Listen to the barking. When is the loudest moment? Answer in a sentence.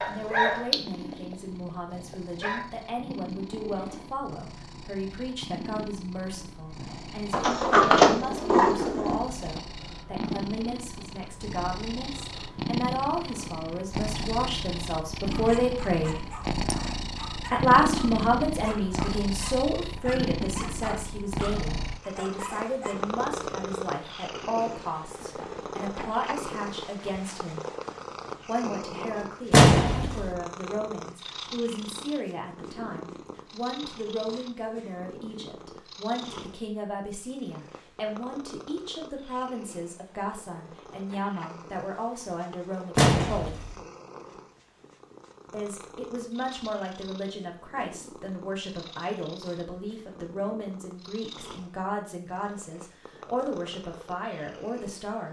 The loudest moment of the barking is at 1 second.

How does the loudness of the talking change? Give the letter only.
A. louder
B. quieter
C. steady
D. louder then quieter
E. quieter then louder
D.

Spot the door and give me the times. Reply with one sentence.
The door can be heard from 7.3 to 9.2 s, from 29.5 to 30.4 s and from 43.0 to 43.8 s.